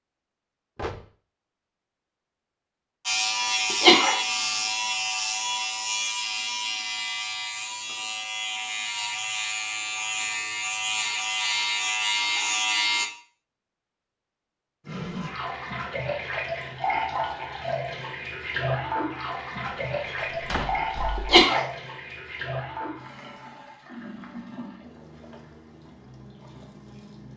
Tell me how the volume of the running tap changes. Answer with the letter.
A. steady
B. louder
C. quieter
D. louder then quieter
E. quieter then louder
C.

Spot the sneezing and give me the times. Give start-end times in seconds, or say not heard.
3.7-4.2, 21.1-21.6.